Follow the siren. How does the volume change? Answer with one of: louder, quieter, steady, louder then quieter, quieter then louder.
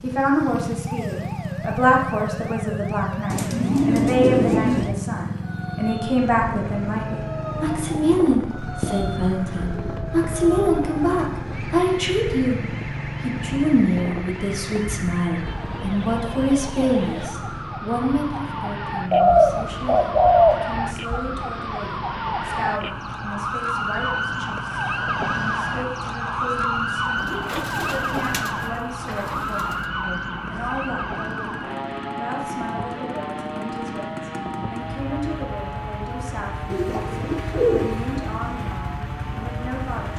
louder then quieter.